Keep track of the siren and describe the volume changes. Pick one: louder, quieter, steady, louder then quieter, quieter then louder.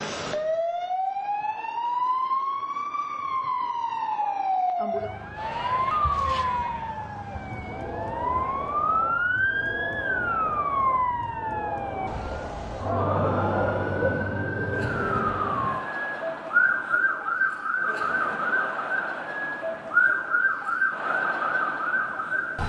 steady.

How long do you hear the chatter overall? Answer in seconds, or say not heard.
17 s.